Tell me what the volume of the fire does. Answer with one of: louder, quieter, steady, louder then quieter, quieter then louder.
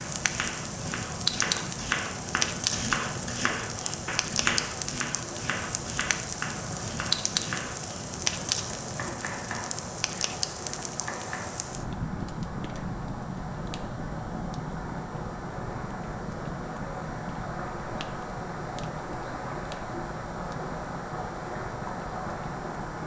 quieter.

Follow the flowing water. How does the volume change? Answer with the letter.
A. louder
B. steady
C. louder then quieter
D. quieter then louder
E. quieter
A.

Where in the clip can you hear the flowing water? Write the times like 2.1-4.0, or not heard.
0.0-23.0.